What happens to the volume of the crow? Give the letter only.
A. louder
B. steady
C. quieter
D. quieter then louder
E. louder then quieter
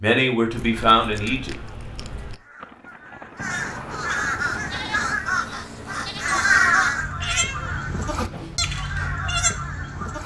E.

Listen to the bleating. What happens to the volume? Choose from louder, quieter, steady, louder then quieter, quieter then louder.
louder.